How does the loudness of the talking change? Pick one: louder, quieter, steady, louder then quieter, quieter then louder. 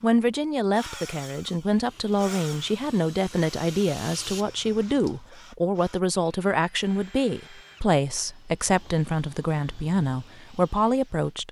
steady.